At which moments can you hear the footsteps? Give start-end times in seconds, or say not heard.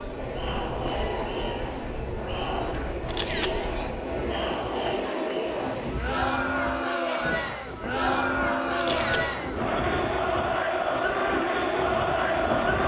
not heard.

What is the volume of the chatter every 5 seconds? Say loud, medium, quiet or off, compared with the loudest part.
medium, loud, loud.